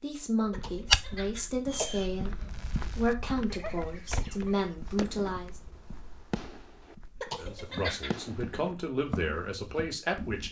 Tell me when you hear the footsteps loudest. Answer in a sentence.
The volume of the footsteps peaks at 1 second.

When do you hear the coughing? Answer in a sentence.
You can hear the coughing from 0.5 to 2.5 s and from 7.2 to 8.4 s.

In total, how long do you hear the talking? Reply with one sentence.
You can hear the talking for 9 seconds altogether.